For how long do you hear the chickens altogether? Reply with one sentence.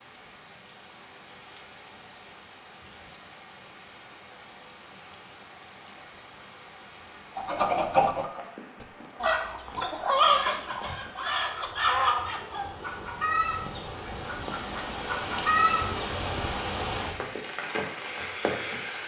You can hear the chickens for 9 seconds altogether.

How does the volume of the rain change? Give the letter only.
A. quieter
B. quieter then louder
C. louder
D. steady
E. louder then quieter
C.